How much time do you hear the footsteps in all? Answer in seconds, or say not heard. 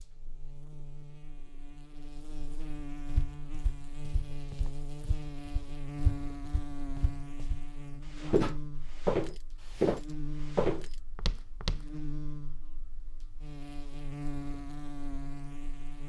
9 s.